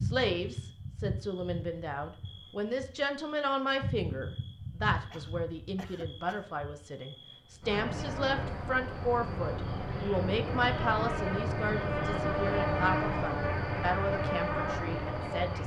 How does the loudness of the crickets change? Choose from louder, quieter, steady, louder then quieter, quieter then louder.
louder.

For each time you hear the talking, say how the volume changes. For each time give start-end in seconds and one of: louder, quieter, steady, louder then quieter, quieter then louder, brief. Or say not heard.
0.0-15.6 steady.